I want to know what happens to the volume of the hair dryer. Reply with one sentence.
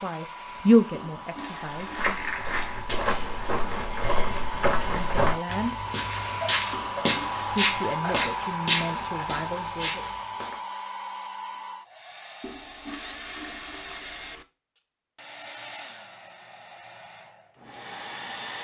The volume of the hair dryer goes up, then down.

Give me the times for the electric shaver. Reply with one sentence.
You can't hear the electric shaver here.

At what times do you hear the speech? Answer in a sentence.
You can hear the speech from 0.0 to 2.2 s, from 4.8 to 5.8 s and from 7.4 to 10.0 s.